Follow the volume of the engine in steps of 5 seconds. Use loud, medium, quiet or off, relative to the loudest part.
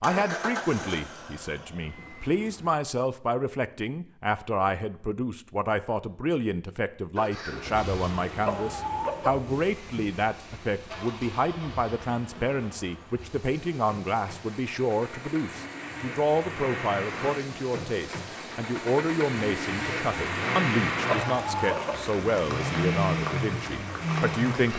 medium, quiet, quiet, medium, loud.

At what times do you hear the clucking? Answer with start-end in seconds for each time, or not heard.
8.2-9.3, 21.1-21.9.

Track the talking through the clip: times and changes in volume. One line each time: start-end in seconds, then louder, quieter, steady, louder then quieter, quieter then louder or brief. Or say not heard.
0.0-24.7 steady.